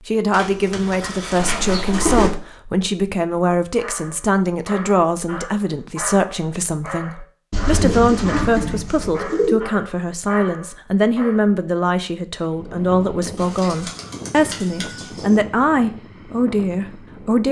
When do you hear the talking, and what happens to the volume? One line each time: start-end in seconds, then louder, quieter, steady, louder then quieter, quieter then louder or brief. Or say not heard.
0.1-17.4 steady.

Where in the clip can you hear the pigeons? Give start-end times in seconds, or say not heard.
0.3-2.3, 7.5-9.6, 13.3-15.4.